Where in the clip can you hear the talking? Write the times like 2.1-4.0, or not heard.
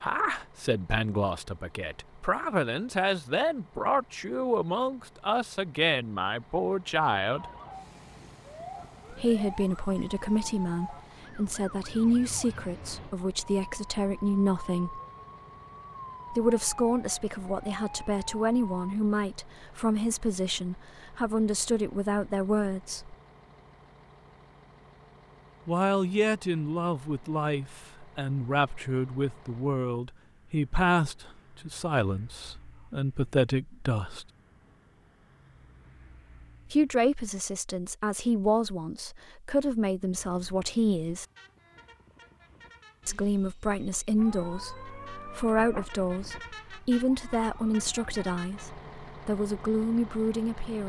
0.0-7.5, 9.1-15.0, 16.3-23.1, 25.6-34.2, 36.7-41.2, 43.0-50.8.